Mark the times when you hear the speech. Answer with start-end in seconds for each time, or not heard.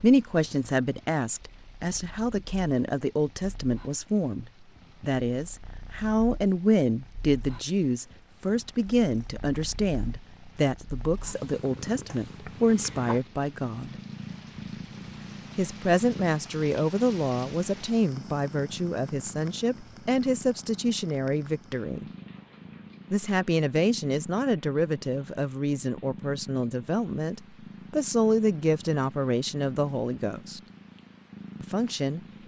0.0-13.9, 15.6-22.1, 23.1-30.6, 31.6-32.2.